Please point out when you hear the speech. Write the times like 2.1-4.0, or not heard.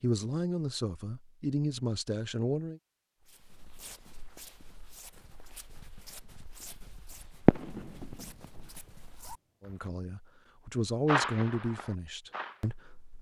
0.0-2.8, 9.6-13.1.